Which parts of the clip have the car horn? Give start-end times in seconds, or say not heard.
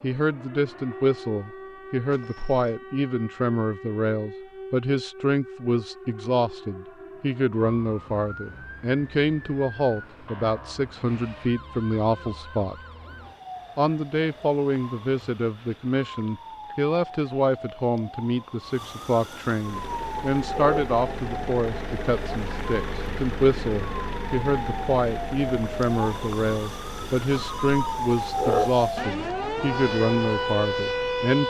not heard.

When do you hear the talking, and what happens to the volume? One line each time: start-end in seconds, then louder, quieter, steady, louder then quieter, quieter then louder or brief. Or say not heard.
0.0-12.8 steady
13.8-31.4 steady.